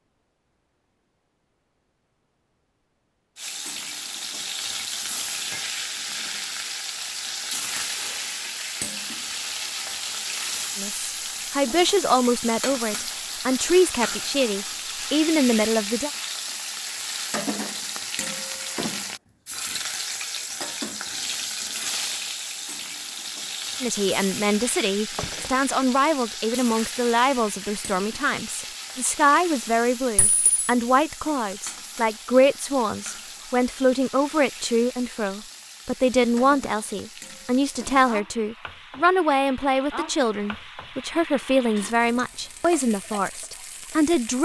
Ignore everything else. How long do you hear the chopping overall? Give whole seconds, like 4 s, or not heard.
not heard.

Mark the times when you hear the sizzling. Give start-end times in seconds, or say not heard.
3.4-44.4.